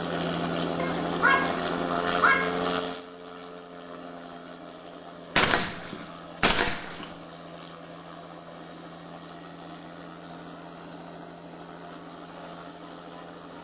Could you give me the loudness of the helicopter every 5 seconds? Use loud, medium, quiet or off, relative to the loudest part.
loud, quiet, quiet.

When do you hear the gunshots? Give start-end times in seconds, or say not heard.
5.3-7.0.